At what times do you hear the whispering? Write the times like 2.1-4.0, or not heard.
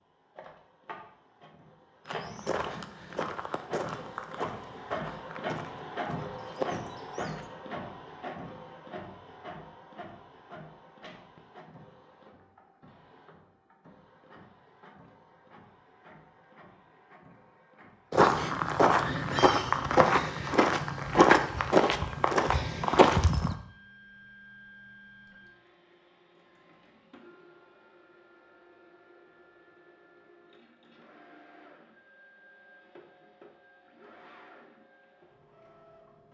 not heard.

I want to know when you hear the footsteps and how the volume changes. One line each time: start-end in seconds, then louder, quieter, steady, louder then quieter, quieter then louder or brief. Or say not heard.
2.0-7.5 quieter then louder
18.1-23.6 steady.